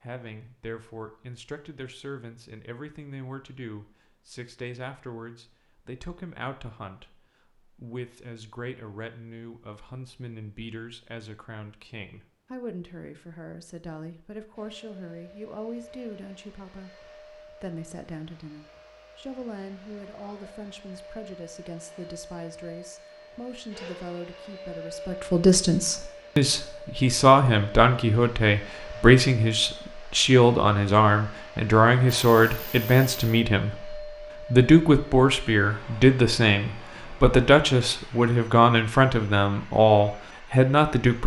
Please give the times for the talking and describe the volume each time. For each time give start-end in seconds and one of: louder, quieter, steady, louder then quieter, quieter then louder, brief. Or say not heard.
0.0-41.2 louder.